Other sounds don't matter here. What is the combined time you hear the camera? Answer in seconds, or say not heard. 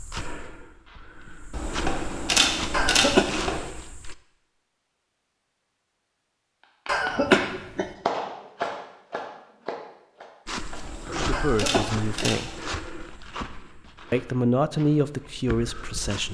4 s.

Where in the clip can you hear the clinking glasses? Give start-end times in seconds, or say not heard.
not heard.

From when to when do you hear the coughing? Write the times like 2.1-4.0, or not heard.
2.7-3.5, 6.8-7.9, 11.3-12.3.